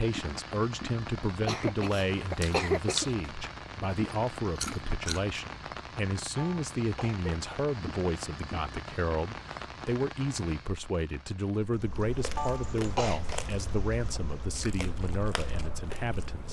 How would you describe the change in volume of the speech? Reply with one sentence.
The volume of the speech stays about the same.